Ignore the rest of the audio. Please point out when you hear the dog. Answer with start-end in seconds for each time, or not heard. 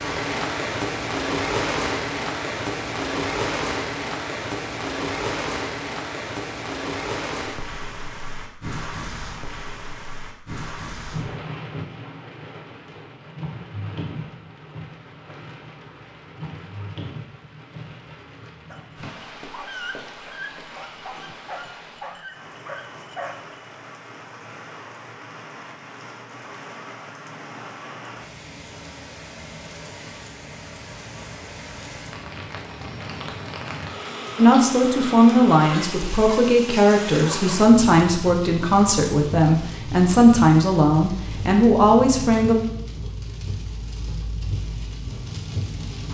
18.7-23.6.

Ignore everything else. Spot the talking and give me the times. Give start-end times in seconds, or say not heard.
34.4-42.5.